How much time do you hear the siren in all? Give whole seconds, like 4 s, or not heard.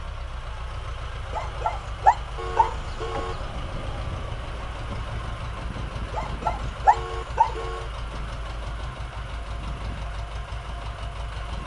not heard.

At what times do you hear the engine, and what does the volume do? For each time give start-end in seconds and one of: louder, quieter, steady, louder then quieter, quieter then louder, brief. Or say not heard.
0.0-11.6 steady.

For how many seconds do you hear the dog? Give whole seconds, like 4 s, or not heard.
3 s.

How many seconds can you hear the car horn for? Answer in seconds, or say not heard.
2 s.